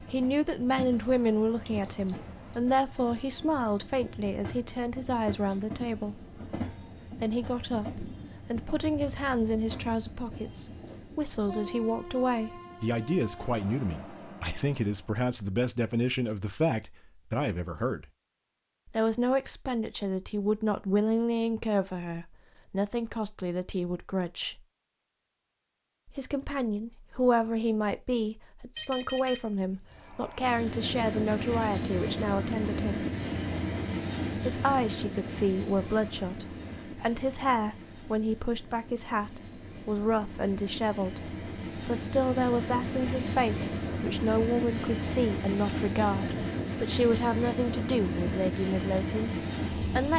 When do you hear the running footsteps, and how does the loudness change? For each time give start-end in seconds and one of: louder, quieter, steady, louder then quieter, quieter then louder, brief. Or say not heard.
not heard.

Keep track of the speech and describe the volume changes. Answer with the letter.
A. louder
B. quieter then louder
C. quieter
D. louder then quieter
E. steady
E.